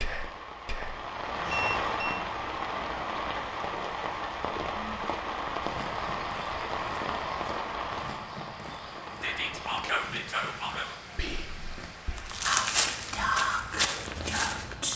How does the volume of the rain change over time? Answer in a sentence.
The loudness of the rain goes down.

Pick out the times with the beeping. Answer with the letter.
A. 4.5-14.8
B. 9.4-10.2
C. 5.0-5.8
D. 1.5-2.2
D.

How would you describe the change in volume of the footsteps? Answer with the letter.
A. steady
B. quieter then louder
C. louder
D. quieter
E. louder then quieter
C.